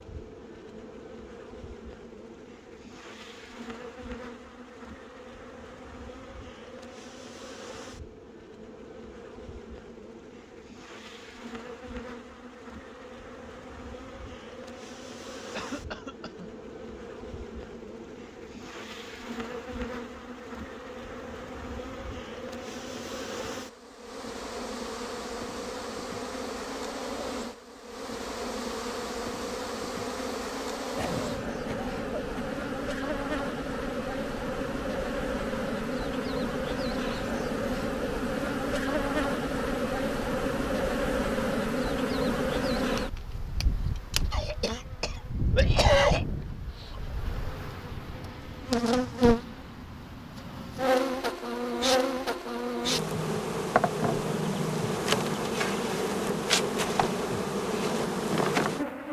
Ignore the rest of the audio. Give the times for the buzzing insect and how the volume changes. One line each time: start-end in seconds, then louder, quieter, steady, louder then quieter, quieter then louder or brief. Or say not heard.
0.0-59.0 louder.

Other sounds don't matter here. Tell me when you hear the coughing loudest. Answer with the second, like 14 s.
46 s.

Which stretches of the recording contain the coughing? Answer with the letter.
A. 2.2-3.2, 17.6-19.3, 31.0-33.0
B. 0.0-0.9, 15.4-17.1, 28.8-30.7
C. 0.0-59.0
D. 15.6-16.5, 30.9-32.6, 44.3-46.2
D.